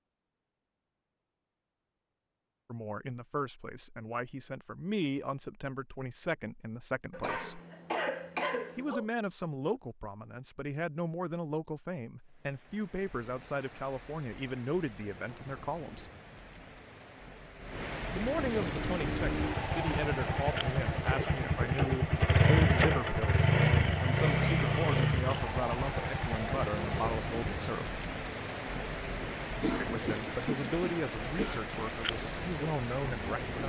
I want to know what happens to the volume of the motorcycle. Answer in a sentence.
The volume of the motorcycle goes up, then down.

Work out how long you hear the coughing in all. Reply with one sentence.
You can hear the coughing for 4 seconds altogether.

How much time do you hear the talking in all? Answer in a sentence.
You can hear the talking for 26 seconds altogether.